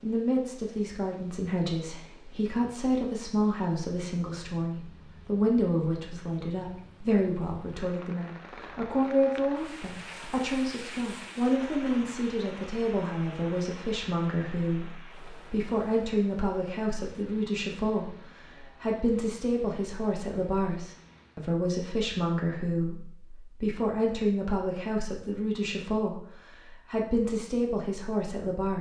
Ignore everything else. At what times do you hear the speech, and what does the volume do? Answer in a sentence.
You can hear the speech from 0.0 to 28.7 s, at a steady volume.